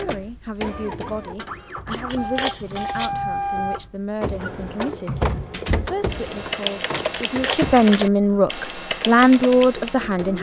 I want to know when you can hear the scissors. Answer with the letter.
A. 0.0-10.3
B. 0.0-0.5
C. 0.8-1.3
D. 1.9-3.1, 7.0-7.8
D.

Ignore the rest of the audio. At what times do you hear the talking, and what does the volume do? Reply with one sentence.
The talking can be heard from 0.0 to 10.3 s, getting louder.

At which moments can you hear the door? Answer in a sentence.
The door can be heard from 5.4 to 5.9 s.